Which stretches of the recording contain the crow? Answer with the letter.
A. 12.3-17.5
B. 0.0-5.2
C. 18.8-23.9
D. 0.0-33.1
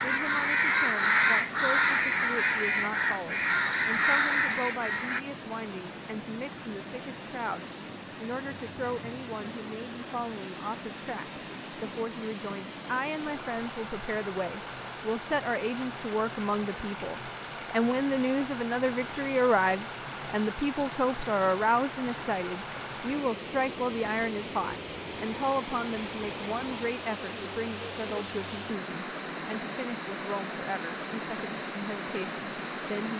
B.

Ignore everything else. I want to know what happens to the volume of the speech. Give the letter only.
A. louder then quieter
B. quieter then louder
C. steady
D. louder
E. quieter
A.